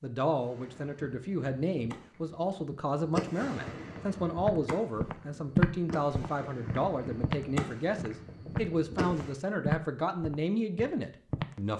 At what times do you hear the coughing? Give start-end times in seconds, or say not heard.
not heard.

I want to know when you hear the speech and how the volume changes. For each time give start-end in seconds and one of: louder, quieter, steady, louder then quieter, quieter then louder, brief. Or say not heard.
0.0-11.7 steady.